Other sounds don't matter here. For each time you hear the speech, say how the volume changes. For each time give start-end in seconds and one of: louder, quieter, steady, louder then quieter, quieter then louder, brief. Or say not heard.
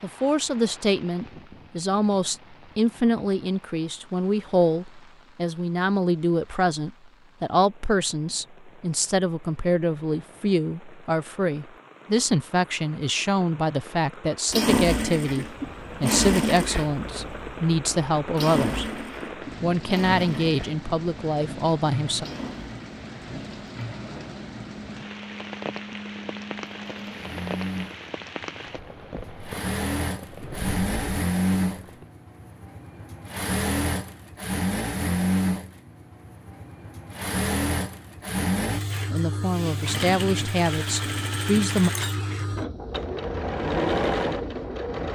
0.0-19.0 steady
19.6-22.2 brief
39.1-41.9 brief.